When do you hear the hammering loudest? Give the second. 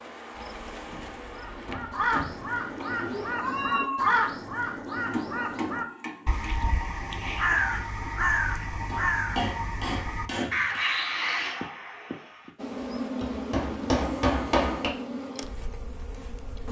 14 s.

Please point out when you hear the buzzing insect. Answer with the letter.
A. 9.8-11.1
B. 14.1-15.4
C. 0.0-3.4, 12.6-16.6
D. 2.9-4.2
C.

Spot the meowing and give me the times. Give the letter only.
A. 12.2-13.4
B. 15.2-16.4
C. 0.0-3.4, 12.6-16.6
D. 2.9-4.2
D.